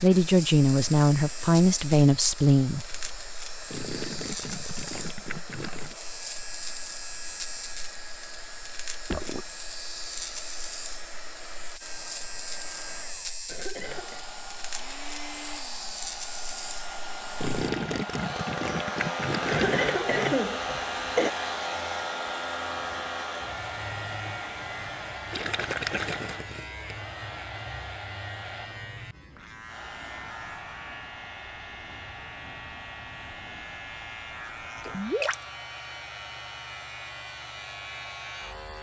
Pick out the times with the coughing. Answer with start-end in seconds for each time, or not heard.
13.4-14.2, 19.4-21.3.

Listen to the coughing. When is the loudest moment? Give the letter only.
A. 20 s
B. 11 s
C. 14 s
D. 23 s
A.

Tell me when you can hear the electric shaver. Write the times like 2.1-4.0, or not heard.
0.0-38.7.